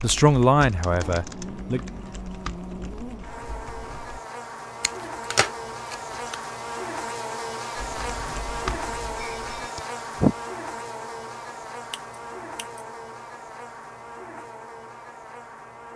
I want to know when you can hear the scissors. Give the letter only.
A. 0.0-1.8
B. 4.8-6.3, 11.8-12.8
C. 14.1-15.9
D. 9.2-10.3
B.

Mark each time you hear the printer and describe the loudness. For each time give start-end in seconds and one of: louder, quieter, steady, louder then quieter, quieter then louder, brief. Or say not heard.
not heard.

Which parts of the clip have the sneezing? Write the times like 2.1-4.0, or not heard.
9.2-10.3.